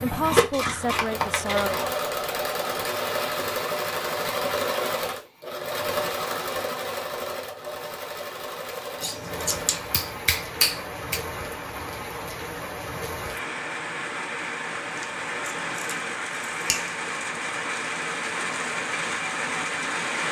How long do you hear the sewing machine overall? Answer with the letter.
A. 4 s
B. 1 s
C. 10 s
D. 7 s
C.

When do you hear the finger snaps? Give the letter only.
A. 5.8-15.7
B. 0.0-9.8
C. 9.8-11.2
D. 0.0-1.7
C.